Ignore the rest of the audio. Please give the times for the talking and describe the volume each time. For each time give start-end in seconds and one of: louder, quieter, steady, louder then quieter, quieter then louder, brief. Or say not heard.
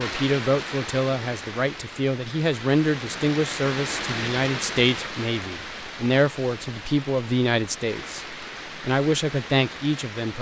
0.0-10.3 steady.